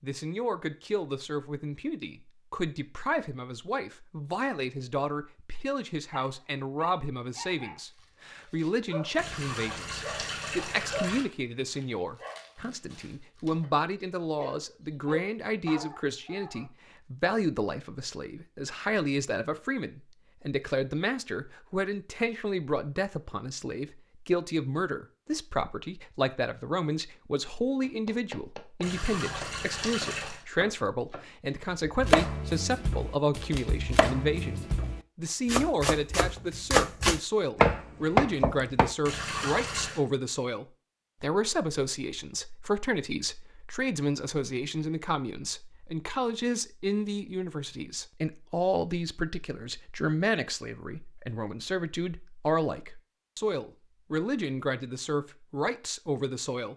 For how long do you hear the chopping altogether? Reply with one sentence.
The chopping can be heard for 11 seconds in total.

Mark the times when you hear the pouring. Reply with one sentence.
The pouring can be heard from 9.2 to 11.2 s, from 28.8 to 30.4 s and from 39.0 to 40.0 s.